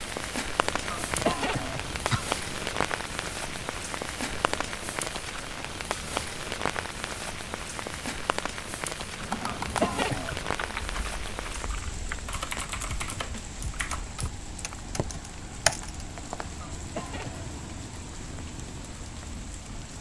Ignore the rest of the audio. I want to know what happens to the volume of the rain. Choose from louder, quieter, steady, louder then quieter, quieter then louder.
quieter.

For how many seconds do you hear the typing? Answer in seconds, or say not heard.
7 s.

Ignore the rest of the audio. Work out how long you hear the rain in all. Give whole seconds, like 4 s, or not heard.
20 s.